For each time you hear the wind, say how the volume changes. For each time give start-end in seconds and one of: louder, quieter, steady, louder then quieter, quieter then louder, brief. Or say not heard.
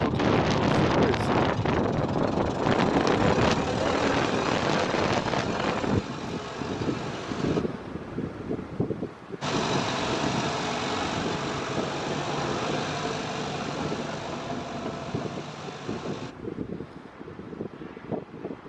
0.0-18.6 quieter.